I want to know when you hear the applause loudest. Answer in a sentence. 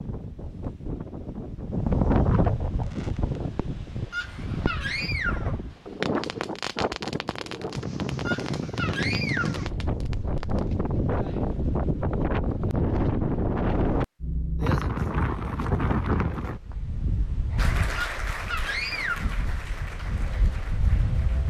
The volume of the applause peaks at 18 seconds.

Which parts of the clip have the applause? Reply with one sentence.
The applause can be heard from 17.6 to 21.4 s.